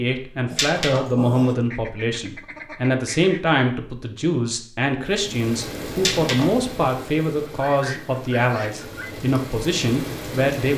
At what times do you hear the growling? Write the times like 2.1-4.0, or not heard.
0.5-1.6, 6.0-6.5.